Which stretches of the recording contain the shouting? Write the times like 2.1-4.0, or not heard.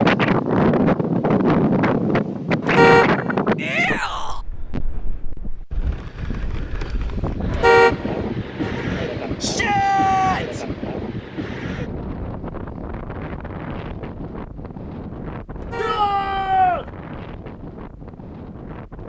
3.5-4.5, 9.4-10.7, 15.8-16.9.